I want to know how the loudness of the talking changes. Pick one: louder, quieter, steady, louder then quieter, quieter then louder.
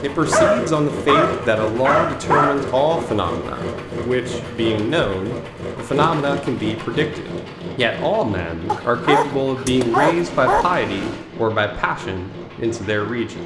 steady.